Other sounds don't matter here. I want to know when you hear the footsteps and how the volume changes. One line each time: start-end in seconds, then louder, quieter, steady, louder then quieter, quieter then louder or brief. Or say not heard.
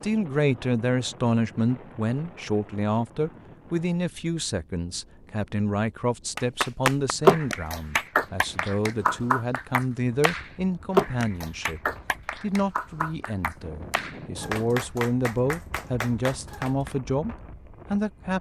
not heard.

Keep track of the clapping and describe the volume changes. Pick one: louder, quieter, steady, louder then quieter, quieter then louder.
quieter.